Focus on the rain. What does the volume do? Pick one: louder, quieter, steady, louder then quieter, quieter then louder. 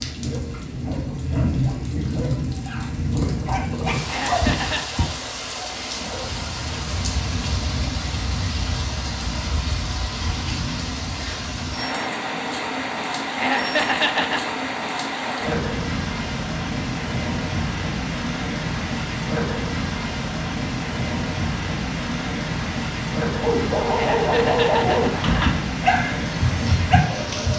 steady.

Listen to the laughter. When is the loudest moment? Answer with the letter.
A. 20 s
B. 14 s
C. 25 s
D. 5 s
B.